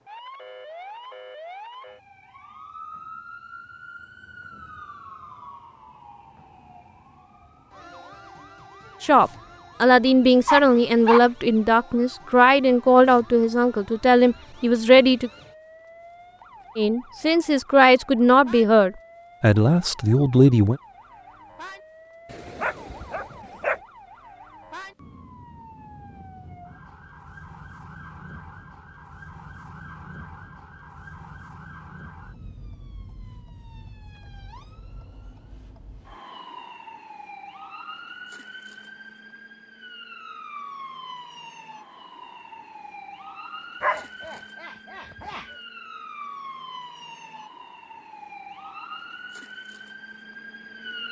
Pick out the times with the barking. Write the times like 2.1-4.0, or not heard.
10.4-11.2, 22.3-23.8, 43.8-45.5.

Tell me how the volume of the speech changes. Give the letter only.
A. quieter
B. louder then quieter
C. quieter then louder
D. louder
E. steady
E.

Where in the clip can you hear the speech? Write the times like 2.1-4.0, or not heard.
9.0-15.3, 16.8-20.8.